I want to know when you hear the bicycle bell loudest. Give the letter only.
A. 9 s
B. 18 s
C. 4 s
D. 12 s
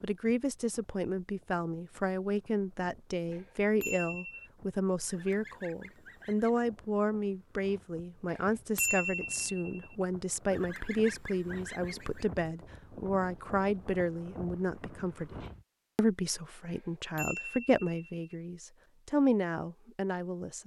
A.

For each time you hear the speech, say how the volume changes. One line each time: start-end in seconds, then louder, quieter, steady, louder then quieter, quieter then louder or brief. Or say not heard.
0.0-20.6 steady.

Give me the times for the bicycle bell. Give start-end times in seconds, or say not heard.
3.3-4.5, 8.3-9.8, 16.6-18.1.